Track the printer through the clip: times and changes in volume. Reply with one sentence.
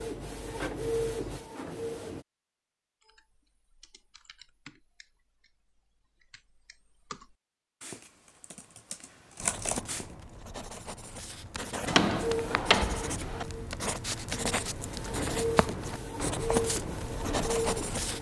You can hear the printer briefly from 0.0 to 2.2 s; and from 11.9 to 18.1 s, getting quieter then louder.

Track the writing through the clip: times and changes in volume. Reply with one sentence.
You can hear the writing from 9.4 to 18.1 s, getting louder.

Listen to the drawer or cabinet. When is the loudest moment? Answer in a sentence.
The volume of the drawer or cabinet peaks at 12 seconds.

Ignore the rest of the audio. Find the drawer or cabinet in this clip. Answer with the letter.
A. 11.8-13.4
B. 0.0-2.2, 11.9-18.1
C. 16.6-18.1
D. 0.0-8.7
A.